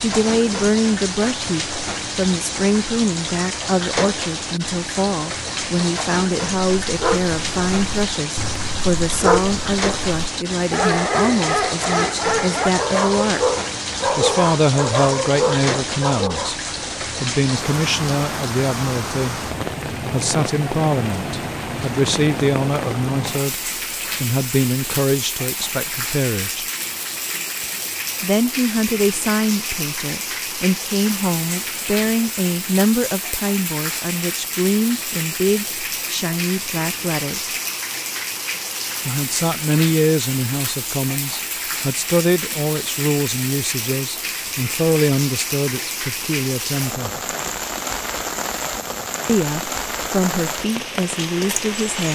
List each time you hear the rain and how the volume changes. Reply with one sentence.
You can hear the rain from 0.0 to 52.0 s, at a steady volume.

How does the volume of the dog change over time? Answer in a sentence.
The volume of the dog goes up.